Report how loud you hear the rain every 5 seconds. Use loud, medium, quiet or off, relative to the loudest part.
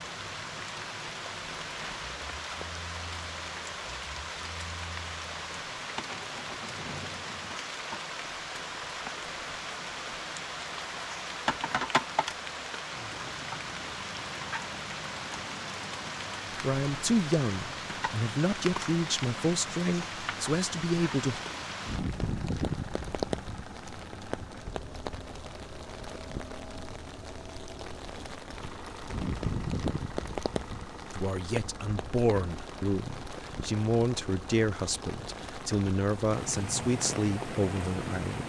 loud, loud, loud, loud, loud, loud, medium, loud.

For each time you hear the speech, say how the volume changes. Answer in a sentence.
You can hear the speech from 16.5 to 21.4 s, at a steady volume; and from 31.1 to 38.4 s, at a steady volume.